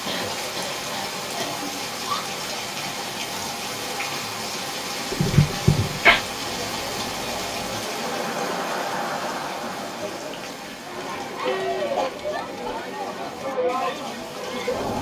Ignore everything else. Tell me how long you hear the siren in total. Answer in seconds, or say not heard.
not heard.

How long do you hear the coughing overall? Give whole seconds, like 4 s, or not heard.
3 s.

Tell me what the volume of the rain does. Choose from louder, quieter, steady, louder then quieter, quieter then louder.
quieter.